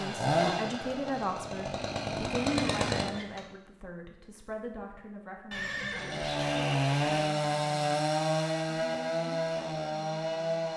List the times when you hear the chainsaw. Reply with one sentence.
The chainsaw can be heard from 0.0 to 3.1 s and from 6.0 to 10.7 s.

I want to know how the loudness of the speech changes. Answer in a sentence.
The volume of the speech goes down.